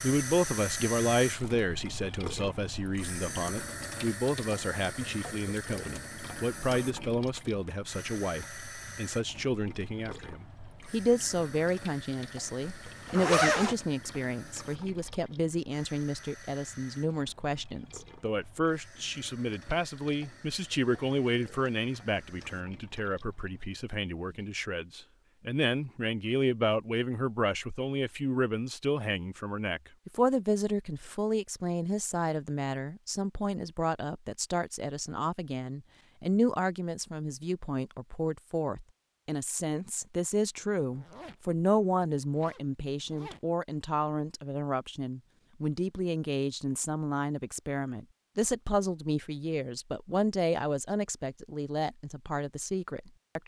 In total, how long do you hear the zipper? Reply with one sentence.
The zipper can be heard for 4 seconds in total.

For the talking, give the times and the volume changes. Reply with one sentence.
You can hear the talking from 0.0 to 53.4 s, at a steady volume.